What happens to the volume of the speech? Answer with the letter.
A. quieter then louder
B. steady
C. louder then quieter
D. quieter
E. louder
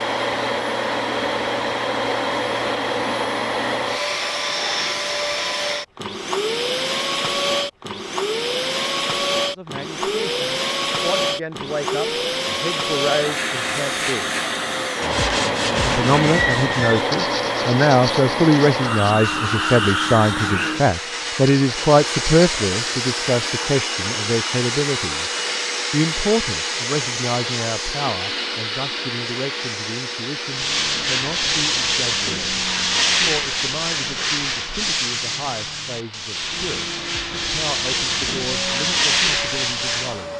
C.